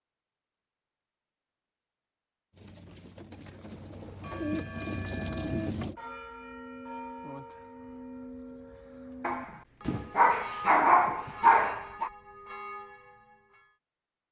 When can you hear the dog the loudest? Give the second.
11 s.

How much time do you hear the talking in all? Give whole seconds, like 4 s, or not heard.
not heard.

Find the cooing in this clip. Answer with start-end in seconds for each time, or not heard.
2.5-6.0.